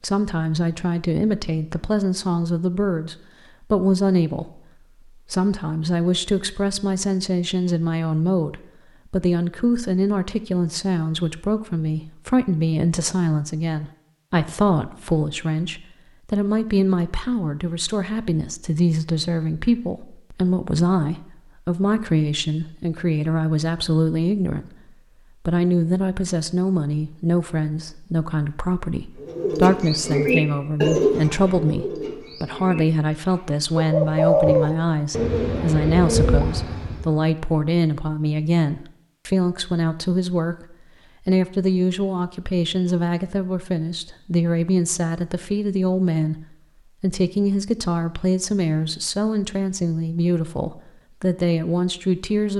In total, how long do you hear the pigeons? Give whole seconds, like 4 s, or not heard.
8 s.